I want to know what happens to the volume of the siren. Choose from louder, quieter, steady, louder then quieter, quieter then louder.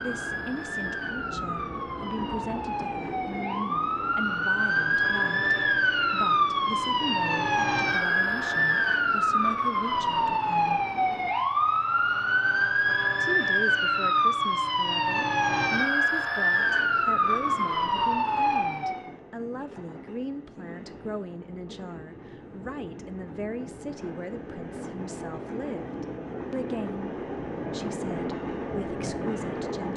louder.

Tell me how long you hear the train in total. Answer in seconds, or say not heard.
25 s.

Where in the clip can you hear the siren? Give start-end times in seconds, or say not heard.
0.0-19.1.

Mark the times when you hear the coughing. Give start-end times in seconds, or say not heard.
not heard.